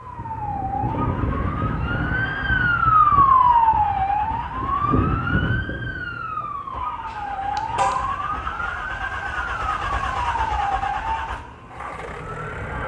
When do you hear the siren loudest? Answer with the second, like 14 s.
3 s.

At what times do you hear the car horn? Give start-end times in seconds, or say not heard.
7.0-8.2.